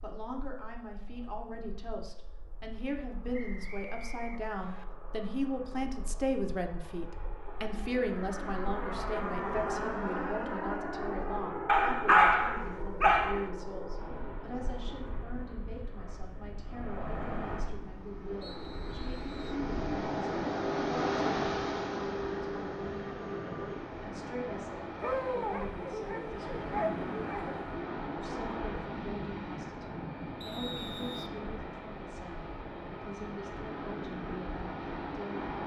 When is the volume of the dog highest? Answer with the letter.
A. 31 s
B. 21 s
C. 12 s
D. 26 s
C.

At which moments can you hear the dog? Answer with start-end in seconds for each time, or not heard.
11.7-13.4, 25.0-27.6.